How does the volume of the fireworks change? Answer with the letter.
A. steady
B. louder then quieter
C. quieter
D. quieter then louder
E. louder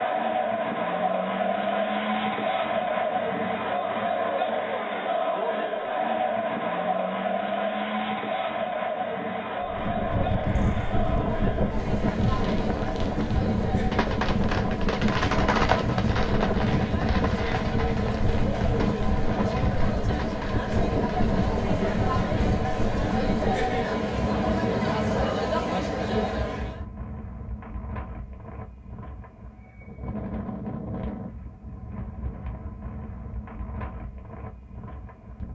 B.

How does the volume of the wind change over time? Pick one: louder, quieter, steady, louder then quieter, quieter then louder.
quieter.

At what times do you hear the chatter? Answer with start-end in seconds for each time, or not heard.
0.0-26.8.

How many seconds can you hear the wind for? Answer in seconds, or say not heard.
26 s.